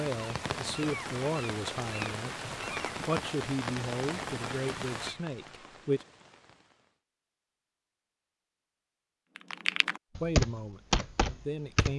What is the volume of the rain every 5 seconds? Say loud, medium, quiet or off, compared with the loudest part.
loud, medium, off.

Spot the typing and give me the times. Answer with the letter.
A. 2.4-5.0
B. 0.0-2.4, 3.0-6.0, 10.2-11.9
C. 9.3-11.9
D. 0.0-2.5
C.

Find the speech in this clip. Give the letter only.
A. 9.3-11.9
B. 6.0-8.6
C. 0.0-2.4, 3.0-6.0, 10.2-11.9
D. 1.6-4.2
C.